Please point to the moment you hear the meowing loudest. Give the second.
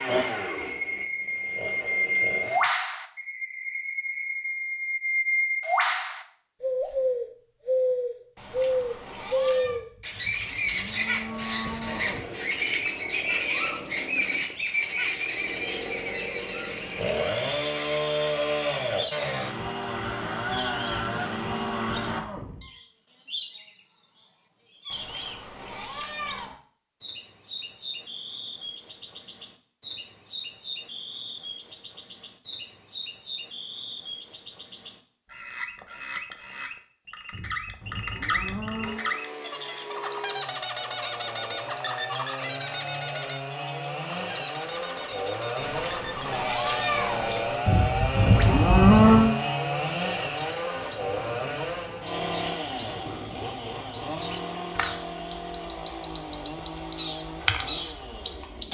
47 s.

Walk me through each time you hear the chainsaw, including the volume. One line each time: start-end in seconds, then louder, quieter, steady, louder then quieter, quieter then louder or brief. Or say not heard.
0.0-2.6 brief
11.8-22.2 louder
38.8-58.7 louder then quieter.